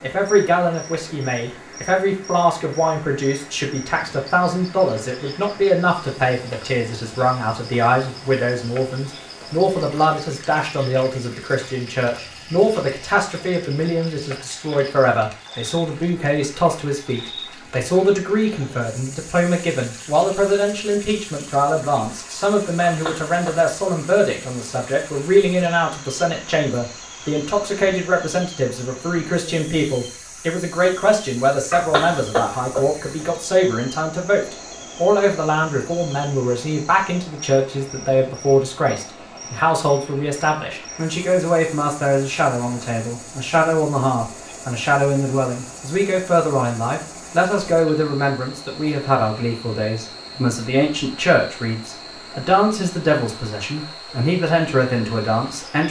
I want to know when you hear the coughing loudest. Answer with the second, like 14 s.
32 s.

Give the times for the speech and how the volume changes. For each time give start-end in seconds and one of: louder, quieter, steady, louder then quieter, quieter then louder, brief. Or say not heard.
0.0-55.8 steady.